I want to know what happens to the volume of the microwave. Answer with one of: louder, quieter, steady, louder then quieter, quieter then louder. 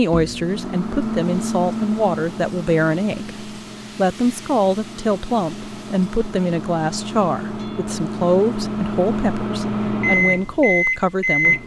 quieter then louder.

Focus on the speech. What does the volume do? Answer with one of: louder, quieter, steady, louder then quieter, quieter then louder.
steady.